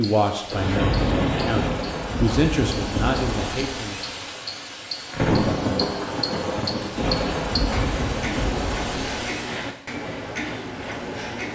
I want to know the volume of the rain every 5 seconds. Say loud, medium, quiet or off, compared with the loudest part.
loud, loud, off.